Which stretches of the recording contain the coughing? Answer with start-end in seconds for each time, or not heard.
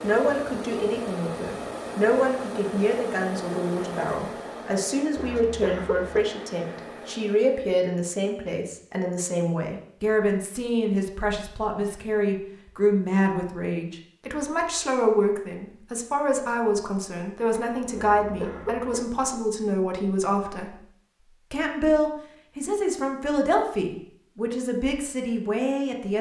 5.2-6.2, 17.9-19.1.